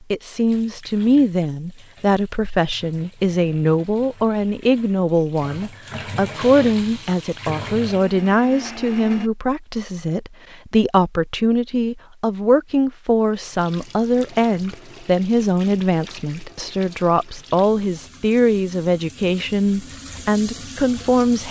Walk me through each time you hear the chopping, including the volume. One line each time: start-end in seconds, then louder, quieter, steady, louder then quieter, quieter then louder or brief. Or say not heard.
not heard.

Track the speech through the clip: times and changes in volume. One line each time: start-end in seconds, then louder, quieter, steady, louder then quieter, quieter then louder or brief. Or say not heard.
0.1-21.4 steady.